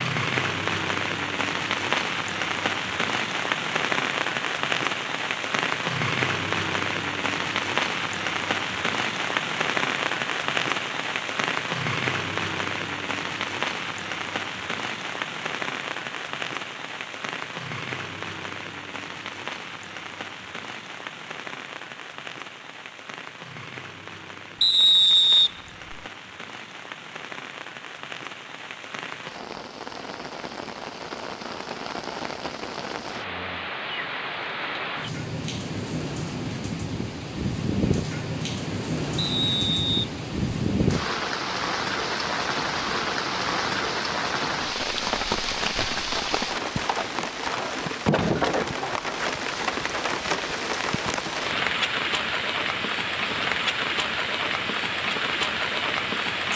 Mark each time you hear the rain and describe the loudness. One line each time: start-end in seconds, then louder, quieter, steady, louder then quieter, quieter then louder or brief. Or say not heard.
0.0-56.5 quieter then louder.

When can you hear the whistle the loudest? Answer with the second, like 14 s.
25 s.